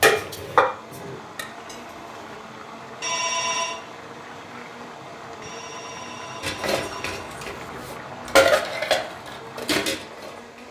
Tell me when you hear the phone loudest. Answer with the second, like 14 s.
3 s.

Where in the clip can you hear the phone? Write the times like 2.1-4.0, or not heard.
3.0-3.8, 5.4-7.2.